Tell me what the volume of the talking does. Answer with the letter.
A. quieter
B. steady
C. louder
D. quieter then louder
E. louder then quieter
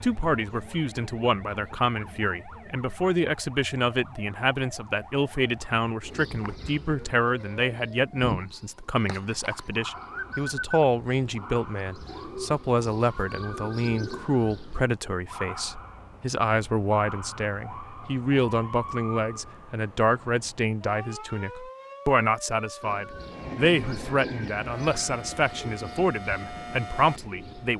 B.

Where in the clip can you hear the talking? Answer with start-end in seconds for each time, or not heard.
0.0-27.7.